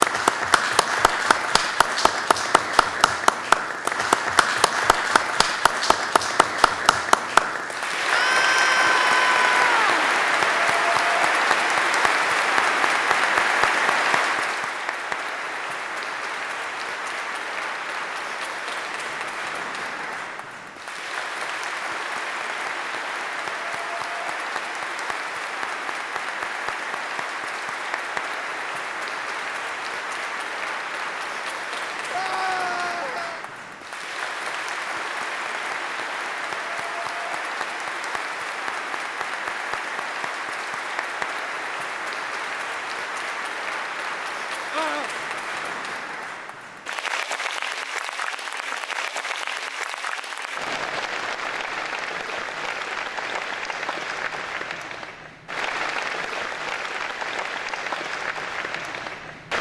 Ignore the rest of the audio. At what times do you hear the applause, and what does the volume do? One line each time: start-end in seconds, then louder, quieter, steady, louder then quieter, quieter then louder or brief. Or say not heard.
0.0-59.5 quieter.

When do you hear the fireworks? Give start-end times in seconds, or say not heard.
not heard.